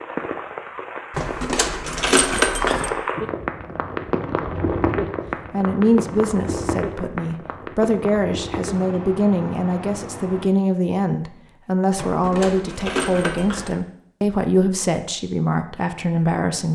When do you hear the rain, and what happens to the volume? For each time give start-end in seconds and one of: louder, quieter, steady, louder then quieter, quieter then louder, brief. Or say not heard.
0.0-10.5 louder then quieter.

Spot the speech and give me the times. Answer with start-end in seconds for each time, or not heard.
5.5-16.7.